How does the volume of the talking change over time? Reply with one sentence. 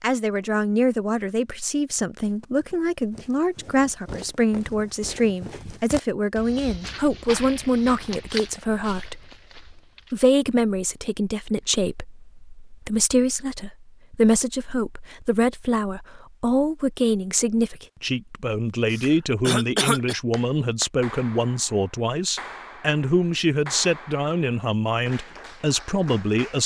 The volume of the talking stays about the same.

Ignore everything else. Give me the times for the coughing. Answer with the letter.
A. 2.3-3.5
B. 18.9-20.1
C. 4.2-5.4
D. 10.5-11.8
B.